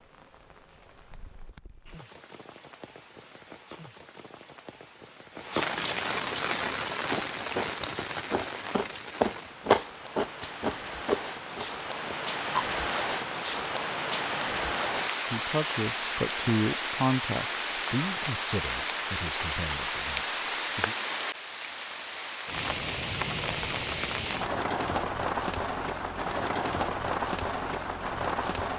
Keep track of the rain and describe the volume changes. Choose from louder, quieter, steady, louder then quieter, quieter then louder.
louder.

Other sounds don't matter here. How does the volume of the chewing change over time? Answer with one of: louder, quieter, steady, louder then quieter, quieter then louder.
louder then quieter.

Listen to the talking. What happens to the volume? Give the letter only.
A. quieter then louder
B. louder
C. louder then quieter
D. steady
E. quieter
E.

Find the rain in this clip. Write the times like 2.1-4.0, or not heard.
0.0-28.7.